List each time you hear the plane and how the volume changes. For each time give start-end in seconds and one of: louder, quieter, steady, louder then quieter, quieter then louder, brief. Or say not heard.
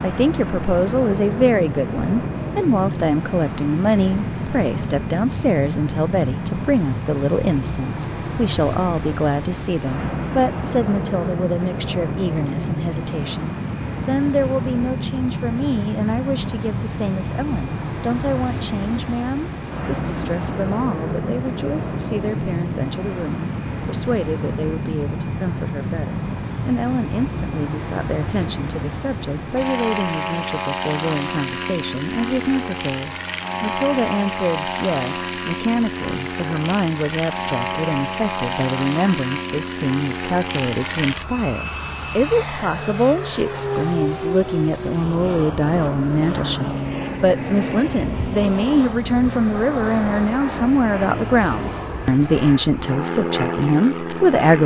0.0-54.6 steady.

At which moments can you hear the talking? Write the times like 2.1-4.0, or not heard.
0.0-54.6.